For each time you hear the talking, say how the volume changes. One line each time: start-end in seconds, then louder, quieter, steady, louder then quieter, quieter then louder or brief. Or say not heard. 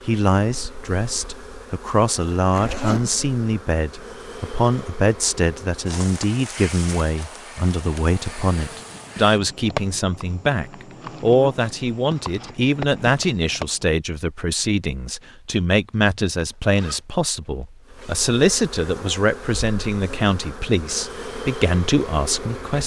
0.0-22.8 steady.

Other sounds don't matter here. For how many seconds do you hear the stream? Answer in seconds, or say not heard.
not heard.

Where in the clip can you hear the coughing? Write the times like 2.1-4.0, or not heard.
not heard.